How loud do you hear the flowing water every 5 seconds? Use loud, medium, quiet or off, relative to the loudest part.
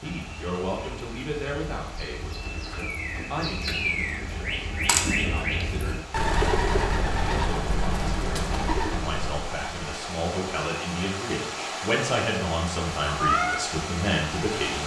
quiet, medium, loud.